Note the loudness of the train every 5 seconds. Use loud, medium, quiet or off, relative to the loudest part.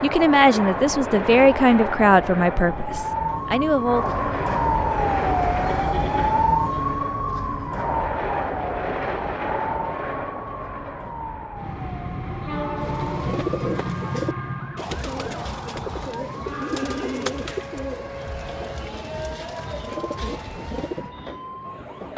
loud, loud, loud, medium, medium.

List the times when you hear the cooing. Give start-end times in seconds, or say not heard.
12.8-21.1.